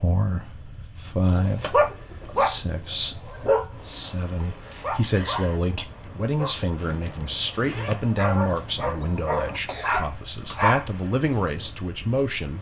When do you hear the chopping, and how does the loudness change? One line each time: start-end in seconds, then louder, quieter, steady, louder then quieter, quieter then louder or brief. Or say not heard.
not heard.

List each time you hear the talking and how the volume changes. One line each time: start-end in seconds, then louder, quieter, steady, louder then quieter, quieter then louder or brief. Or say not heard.
0.0-12.5 steady.